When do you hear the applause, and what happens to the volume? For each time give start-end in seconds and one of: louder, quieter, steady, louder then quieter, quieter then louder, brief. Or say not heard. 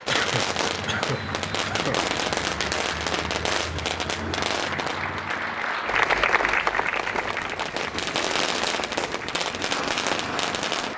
0.0-10.9 louder then quieter.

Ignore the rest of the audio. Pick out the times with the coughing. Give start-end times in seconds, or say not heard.
0.1-2.0.